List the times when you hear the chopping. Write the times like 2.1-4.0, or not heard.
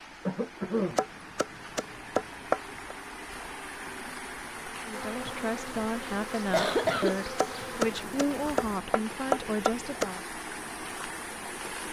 0.9-3.0, 7.3-10.1.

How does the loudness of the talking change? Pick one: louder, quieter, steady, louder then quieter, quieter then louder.
steady.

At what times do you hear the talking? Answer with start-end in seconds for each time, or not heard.
4.8-10.2.